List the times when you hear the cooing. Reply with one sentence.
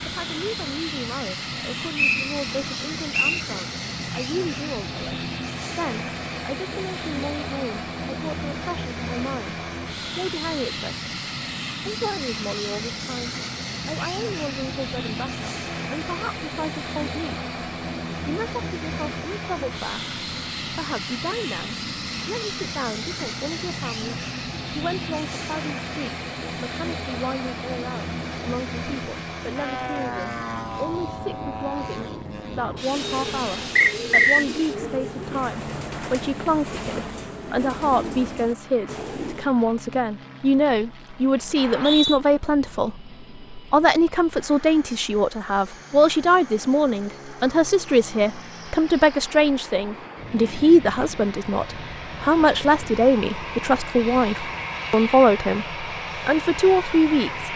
You can hear the cooing from 32.9 to 39.5 s.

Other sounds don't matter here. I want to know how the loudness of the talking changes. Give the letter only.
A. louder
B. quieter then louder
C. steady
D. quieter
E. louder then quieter
A.